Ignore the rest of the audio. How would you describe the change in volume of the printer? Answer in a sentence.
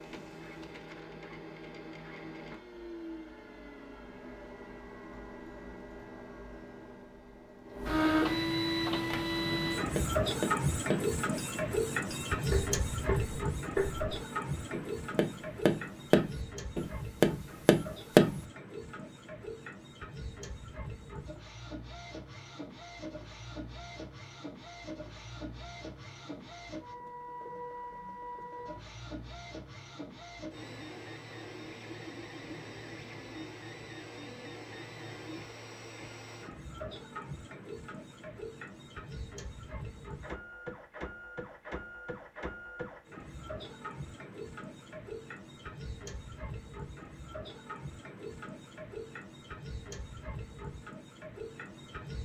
The loudness of the printer goes down.